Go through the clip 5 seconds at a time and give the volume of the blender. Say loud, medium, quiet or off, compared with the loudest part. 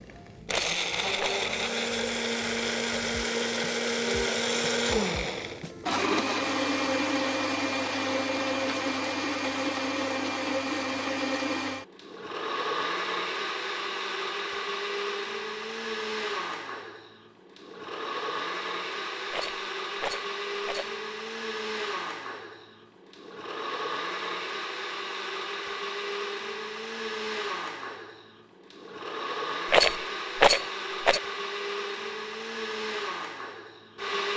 loud, loud, loud, medium, medium, medium, medium.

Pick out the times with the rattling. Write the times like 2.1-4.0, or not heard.
0.5-1.4, 19.3-20.9, 29.7-31.2.